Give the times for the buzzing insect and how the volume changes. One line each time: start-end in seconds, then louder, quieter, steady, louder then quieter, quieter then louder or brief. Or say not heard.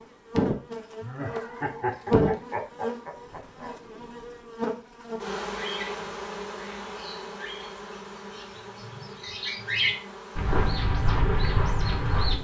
0.0-12.3 quieter.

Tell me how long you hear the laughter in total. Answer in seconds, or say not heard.
3 s.